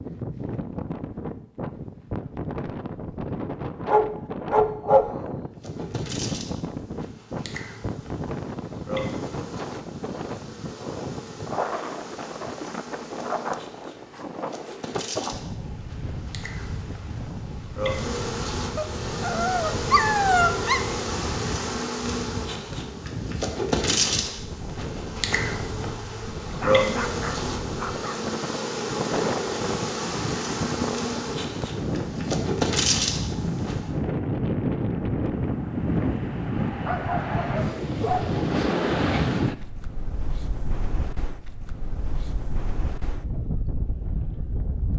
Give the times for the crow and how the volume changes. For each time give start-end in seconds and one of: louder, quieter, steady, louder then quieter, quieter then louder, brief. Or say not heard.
not heard.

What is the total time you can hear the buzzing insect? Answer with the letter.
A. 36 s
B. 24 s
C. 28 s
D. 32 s
C.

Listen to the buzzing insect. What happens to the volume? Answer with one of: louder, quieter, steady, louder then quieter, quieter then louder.
louder.